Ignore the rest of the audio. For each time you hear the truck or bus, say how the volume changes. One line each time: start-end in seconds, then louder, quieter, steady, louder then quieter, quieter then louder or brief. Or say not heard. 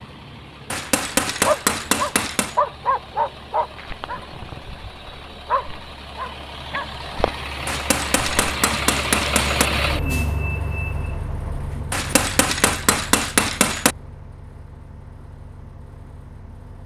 0.0-16.8 louder then quieter.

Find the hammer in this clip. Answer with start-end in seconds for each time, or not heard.
0.7-2.6, 7.7-9.7, 11.9-13.9.